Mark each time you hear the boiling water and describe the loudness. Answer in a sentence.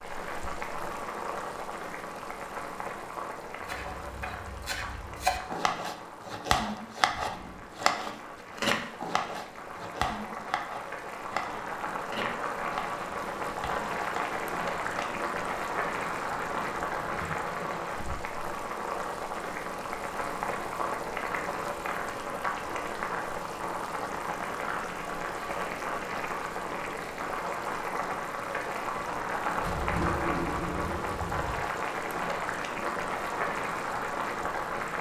You can hear the boiling water from 0.0 to 34.9 s, getting louder.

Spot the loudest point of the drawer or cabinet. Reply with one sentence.
The loudest moment of the drawer or cabinet is at 30 seconds.